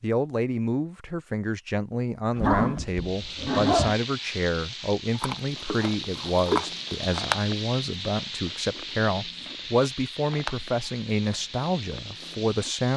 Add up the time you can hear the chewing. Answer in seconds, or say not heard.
8 s.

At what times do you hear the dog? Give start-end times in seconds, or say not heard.
2.4-4.0.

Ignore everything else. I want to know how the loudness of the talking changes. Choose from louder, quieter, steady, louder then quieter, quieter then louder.
steady.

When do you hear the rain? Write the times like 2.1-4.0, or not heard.
3.0-12.9.